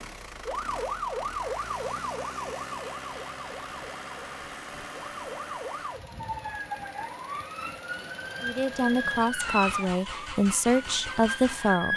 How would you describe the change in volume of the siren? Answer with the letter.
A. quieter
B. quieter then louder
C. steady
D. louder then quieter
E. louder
B.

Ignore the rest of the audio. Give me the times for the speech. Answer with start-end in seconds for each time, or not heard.
8.4-11.9.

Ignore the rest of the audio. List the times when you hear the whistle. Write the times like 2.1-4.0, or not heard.
not heard.